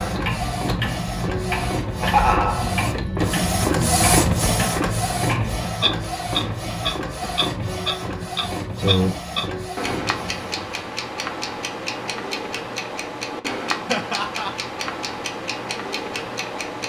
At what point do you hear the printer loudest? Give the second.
4 s.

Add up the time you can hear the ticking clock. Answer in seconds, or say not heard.
17 s.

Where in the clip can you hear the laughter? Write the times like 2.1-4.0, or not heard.
1.9-2.8, 13.8-14.5.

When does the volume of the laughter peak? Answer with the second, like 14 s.
2 s.